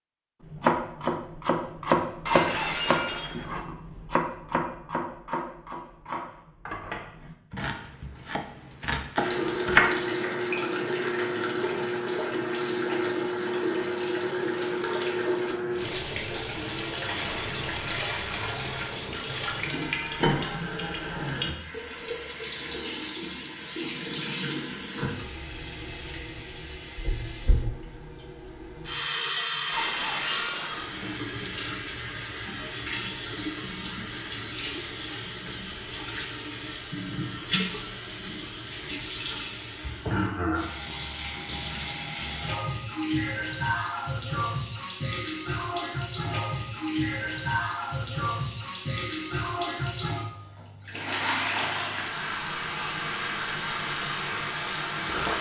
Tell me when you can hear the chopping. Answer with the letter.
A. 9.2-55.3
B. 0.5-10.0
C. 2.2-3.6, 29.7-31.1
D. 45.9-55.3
B.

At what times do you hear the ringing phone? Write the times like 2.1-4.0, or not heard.
not heard.